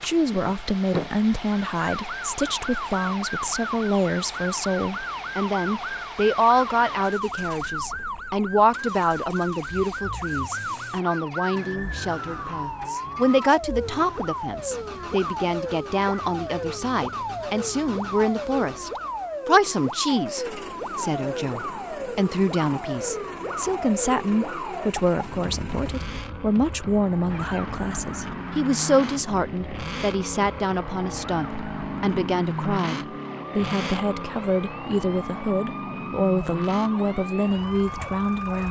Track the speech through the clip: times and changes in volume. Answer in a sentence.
The speech can be heard from 0.0 to 38.6 s, at a steady volume.